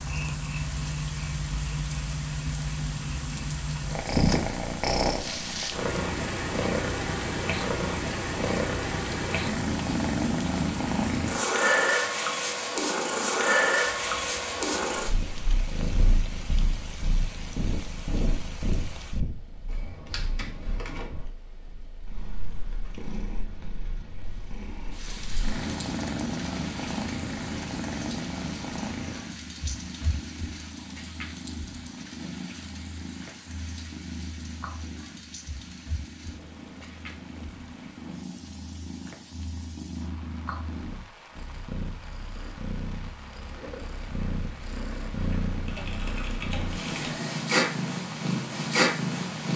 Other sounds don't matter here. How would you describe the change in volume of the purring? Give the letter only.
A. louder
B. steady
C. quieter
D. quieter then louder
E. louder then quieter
D.